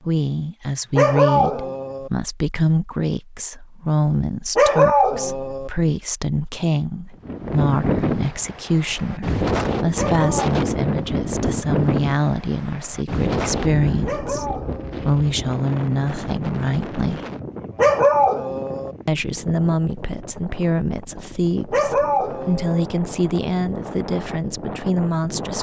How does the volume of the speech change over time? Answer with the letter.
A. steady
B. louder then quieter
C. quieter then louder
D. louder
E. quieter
A.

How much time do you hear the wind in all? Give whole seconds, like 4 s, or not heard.
18 s.